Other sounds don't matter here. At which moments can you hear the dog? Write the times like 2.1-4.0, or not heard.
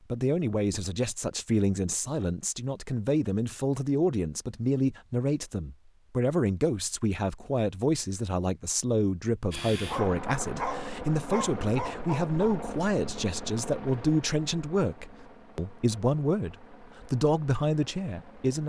9.8-12.7.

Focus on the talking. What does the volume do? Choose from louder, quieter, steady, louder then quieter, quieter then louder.
steady.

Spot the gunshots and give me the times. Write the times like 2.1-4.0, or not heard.
not heard.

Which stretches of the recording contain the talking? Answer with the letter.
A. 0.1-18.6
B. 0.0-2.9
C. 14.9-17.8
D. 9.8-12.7
A.